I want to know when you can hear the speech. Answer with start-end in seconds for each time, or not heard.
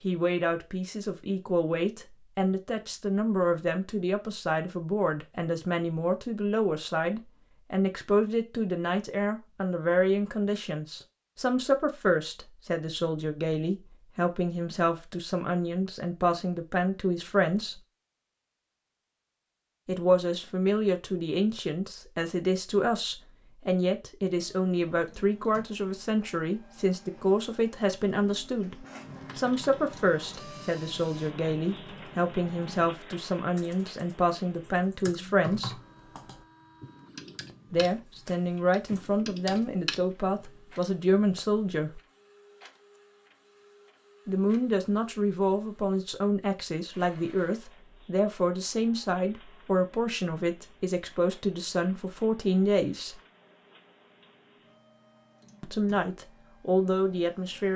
0.0-17.8, 19.9-35.8, 37.7-42.0, 44.2-53.2, 55.6-57.7.